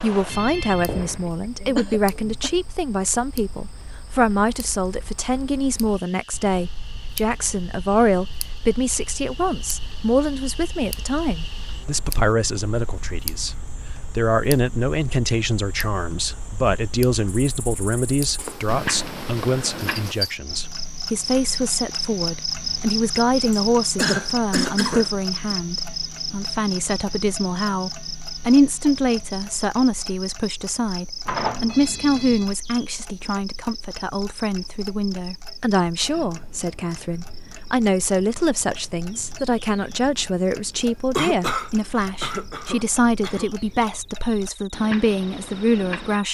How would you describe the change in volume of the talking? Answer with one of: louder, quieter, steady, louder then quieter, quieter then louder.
steady.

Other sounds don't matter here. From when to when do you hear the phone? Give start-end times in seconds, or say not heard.
0.2-1.3, 31.2-32.5.